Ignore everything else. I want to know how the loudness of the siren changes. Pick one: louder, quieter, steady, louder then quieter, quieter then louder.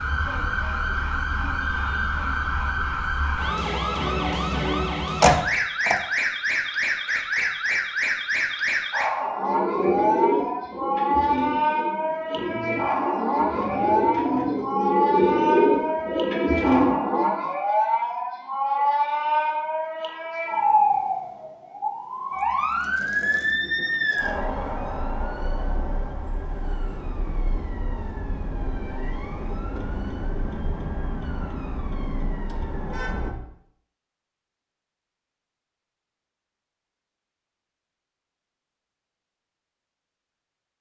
quieter.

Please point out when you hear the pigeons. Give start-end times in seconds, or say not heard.
9.2-17.4.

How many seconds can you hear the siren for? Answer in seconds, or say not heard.
33 s.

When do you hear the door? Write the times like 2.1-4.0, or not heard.
5.2-6.0.